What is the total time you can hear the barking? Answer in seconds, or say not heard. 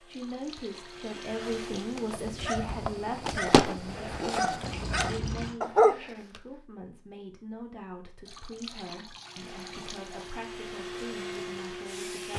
5 s.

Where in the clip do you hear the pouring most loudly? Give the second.
5 s.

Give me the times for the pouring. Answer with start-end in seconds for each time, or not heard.
0.1-2.0, 4.6-5.6, 8.2-10.3.